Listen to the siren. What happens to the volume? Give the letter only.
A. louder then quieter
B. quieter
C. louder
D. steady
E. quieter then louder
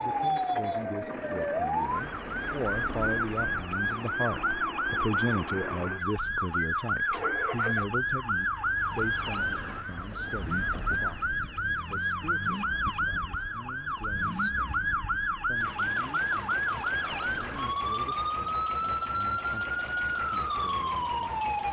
D.